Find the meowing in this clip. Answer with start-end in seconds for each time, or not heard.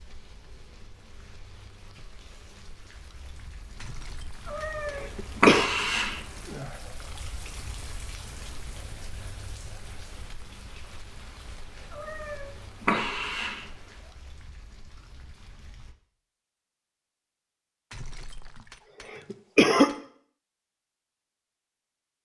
4.5-6.7, 11.9-13.9.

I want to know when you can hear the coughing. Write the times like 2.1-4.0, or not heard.
3.8-5.7, 17.9-19.9.